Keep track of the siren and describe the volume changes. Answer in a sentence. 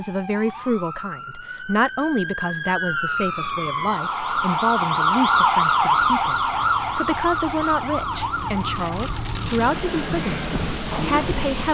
The loudness of the siren goes up, then down.